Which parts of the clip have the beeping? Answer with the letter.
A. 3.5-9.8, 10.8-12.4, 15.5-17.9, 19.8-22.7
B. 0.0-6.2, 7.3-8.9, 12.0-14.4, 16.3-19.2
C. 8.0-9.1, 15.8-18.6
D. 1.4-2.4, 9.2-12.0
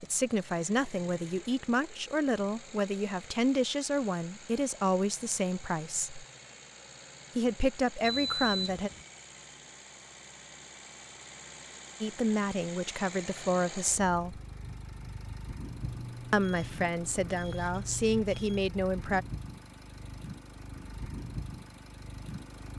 C.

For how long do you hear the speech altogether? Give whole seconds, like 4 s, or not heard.
13 s.